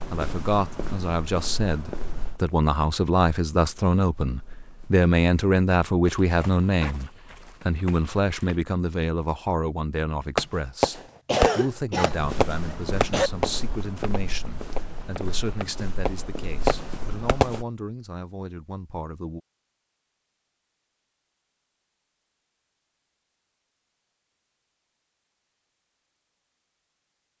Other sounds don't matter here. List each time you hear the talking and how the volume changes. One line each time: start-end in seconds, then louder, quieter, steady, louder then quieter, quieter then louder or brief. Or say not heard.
0.1-19.4 quieter.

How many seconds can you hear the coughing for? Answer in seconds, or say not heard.
2 s.